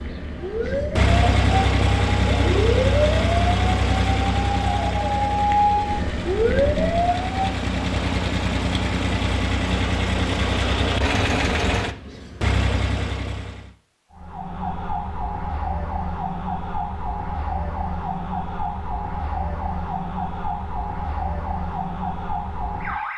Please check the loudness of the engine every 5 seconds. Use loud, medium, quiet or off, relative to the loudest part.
loud, loud, loud, off, off.